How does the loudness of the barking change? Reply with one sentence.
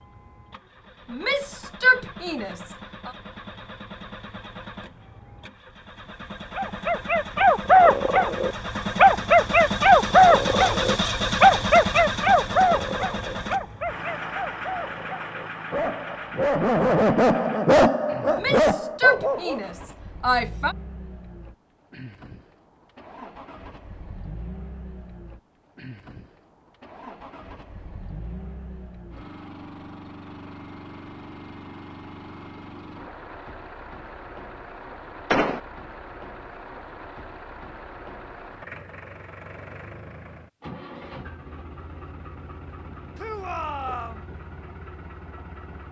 The volume of the barking goes down, then up.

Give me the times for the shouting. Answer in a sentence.
You can hear the shouting from 1.1 to 3.1 s, from 18.2 to 20.8 s and from 43.1 to 44.2 s.